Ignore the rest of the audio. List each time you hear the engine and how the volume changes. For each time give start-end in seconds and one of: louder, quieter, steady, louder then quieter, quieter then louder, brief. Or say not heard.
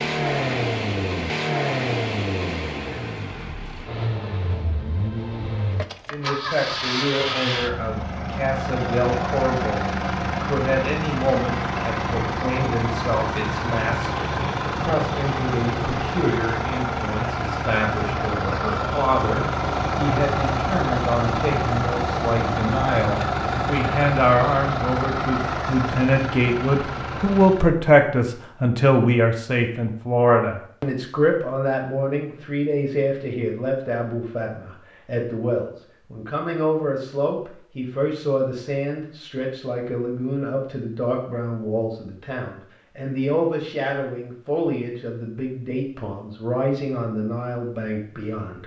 0.0-27.7 steady.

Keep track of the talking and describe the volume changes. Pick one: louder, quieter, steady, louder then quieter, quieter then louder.
louder then quieter.